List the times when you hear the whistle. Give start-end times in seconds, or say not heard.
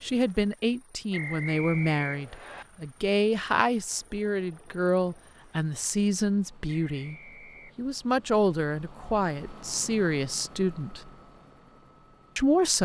1.1-2.6, 6.8-7.8.